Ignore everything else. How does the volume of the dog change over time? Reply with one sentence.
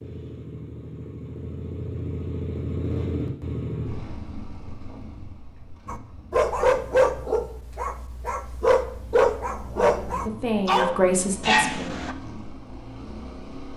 The volume of the dog goes down, then up.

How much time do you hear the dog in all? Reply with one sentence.
You can hear the dog for 6 seconds altogether.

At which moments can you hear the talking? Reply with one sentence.
You can hear the talking from 9.8 to 12.2 s.